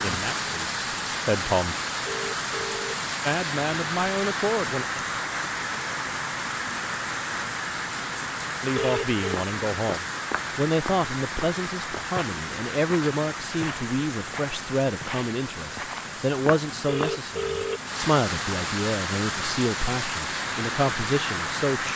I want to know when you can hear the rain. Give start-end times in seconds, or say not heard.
0.0-21.9.